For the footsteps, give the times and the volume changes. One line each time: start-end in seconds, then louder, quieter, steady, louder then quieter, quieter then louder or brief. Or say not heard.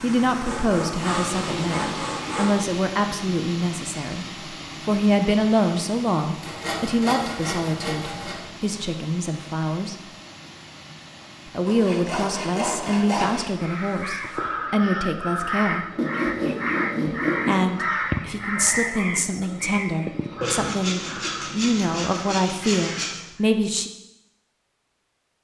not heard.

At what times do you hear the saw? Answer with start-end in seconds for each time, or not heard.
0.5-2.5, 6.4-8.4, 11.7-13.5, 15.9-17.6, 20.4-23.2.